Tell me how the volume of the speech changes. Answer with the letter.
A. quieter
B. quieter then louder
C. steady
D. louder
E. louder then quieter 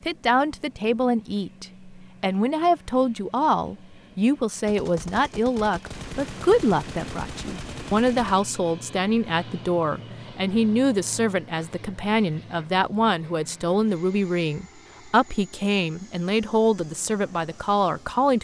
C.